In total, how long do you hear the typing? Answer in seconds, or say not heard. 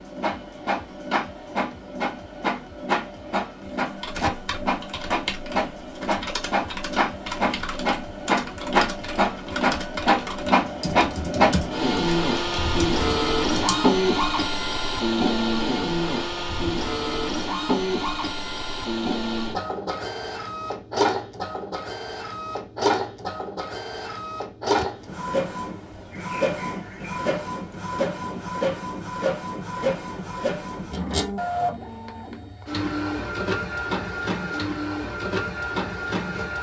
10 s.